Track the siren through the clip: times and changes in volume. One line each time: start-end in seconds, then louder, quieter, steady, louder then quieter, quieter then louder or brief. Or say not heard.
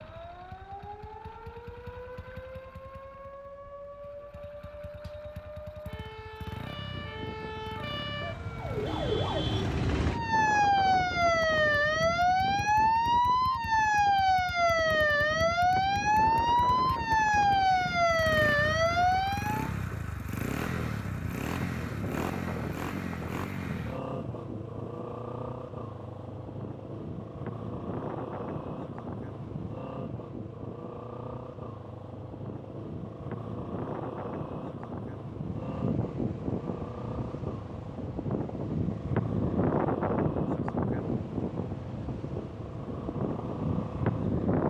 0.0-19.7 louder.